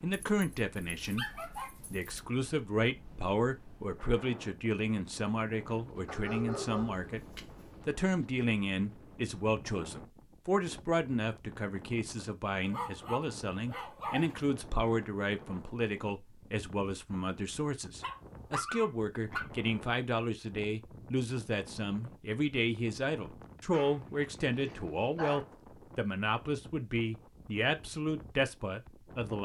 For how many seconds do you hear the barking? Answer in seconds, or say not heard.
9 s.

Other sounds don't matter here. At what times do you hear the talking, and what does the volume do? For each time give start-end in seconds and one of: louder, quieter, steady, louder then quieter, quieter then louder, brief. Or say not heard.
0.0-29.4 steady.